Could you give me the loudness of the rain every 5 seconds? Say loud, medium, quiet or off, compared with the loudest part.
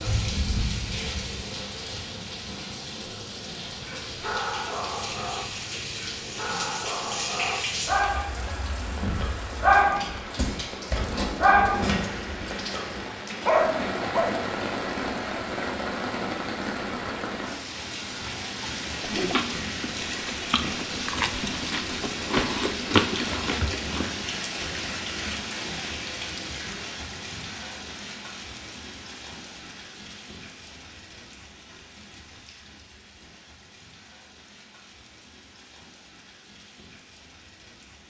loud, loud, loud, loud, loud, medium, quiet, quiet.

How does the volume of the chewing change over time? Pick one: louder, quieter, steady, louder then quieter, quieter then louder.
louder.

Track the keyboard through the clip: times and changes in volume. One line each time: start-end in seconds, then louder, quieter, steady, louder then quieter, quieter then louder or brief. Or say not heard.
not heard.